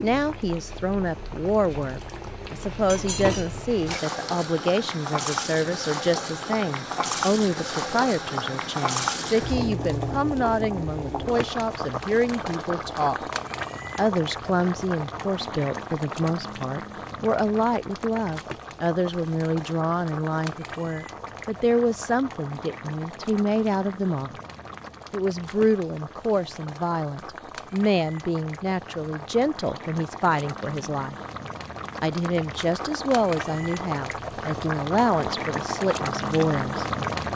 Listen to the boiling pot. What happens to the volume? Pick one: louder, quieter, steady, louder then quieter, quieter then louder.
quieter then louder.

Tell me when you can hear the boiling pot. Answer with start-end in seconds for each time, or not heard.
0.0-37.3.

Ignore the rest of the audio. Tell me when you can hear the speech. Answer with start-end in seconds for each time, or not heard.
0.0-13.2, 13.9-24.4, 25.1-31.1, 32.0-36.9.